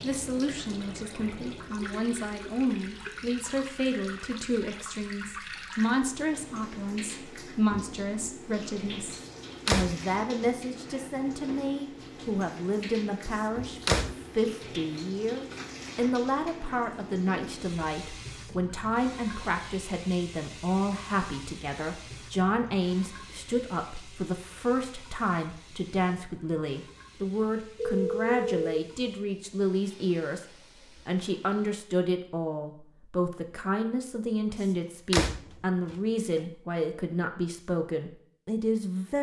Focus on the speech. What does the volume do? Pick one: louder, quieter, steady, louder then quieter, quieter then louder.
steady.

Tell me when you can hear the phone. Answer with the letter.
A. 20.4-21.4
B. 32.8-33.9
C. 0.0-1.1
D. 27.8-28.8
D.